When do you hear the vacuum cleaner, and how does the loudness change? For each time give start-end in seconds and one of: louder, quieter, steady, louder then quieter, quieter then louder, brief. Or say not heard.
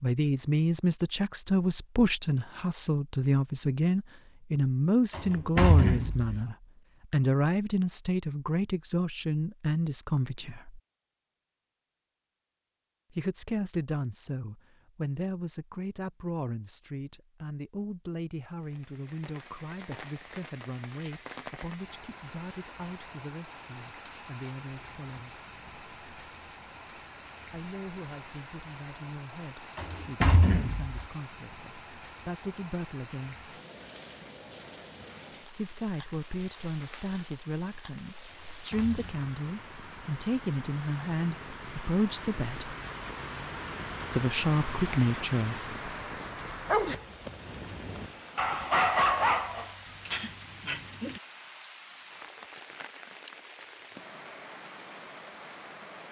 not heard.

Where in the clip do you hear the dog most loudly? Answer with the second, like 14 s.
49 s.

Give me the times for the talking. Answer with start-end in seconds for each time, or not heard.
0.0-10.8, 13.2-25.4, 27.5-33.4, 35.5-42.8, 44.1-45.6.